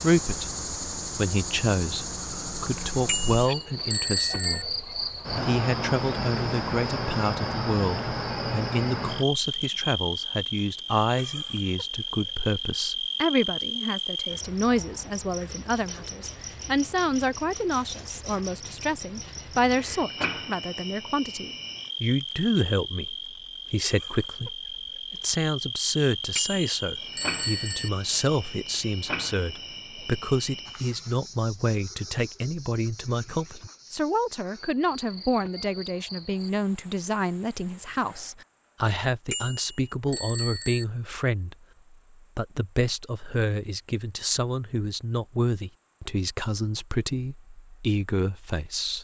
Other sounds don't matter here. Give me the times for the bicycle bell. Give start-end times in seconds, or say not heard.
3.0-4.7, 26.4-27.9, 39.3-40.9.